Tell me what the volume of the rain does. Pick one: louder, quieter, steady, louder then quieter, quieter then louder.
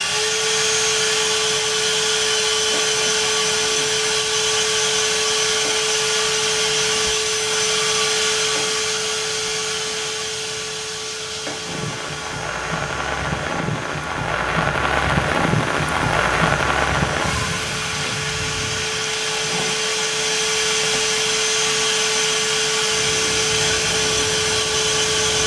louder then quieter.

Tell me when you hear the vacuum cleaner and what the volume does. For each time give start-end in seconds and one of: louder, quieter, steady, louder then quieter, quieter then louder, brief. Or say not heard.
0.0-25.4 quieter then louder.